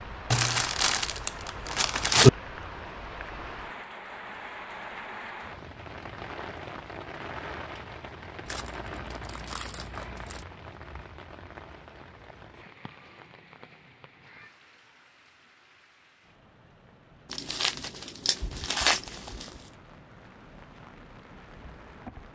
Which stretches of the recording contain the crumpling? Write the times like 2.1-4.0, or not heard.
0.3-2.3, 8.4-10.4, 17.3-19.5.